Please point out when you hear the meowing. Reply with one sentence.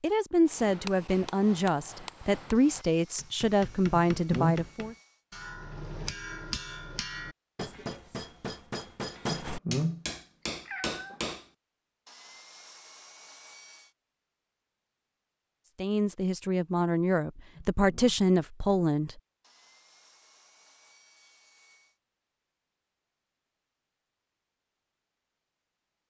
The meowing can be heard from 4.1 to 4.7 s, from 9.2 to 10.1 s, from 10.7 to 11.2 s and from 17.5 to 18.1 s.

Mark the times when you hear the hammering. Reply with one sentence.
The hammering can be heard from 0.5 to 11.4 s.